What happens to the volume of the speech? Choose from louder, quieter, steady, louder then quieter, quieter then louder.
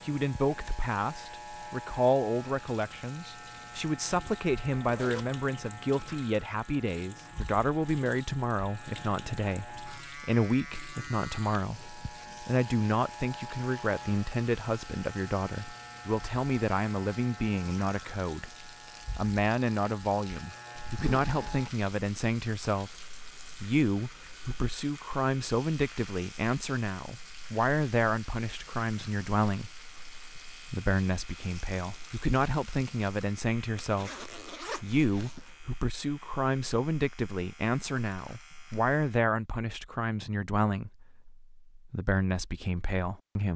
steady.